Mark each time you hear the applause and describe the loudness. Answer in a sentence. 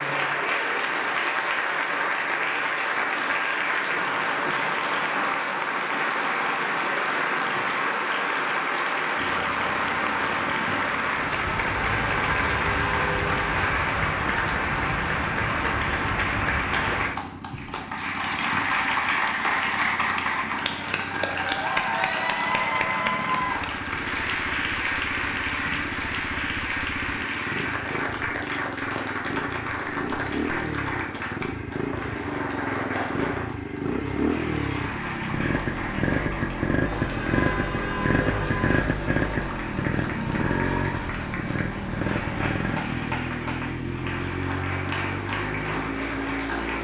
The applause can be heard from 0.0 to 46.7 s, getting quieter.